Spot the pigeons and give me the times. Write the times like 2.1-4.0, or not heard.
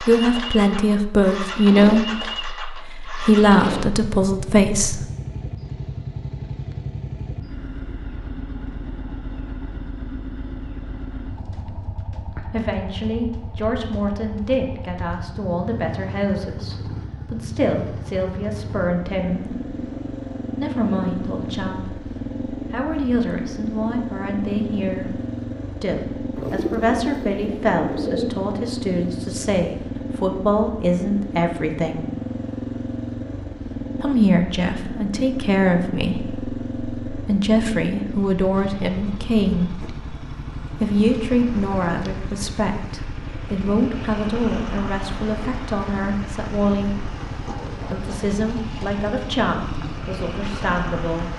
26.4-28.3.